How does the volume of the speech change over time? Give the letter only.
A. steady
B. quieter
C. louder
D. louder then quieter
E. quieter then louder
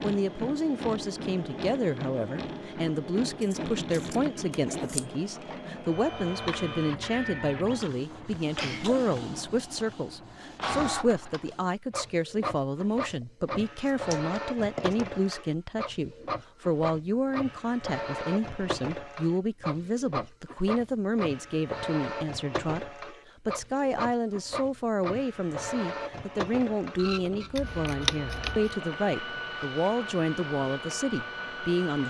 A.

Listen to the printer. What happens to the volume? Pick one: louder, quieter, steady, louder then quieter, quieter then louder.
steady.